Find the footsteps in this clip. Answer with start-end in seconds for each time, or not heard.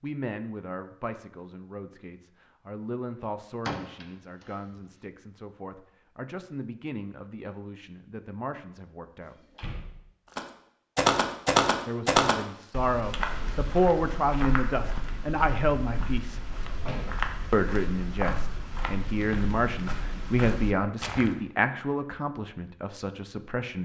10.3-21.4.